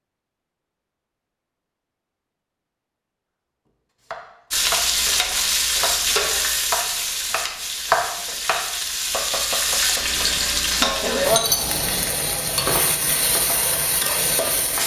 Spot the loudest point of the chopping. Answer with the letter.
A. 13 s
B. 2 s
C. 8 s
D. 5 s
C.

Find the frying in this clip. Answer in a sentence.
The frying can be heard from 4.5 to 14.8 s.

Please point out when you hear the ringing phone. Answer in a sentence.
You can't hear the ringing phone here.